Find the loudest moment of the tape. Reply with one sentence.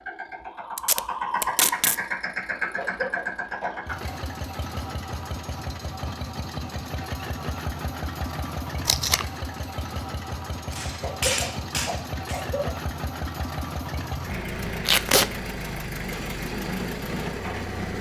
The loudest moment of the tape is at 15 seconds.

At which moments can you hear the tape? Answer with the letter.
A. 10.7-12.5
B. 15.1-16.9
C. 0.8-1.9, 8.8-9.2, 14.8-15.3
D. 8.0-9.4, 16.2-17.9
C.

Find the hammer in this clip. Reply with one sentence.
You can hear the hammer from 10.7 to 12.5 s.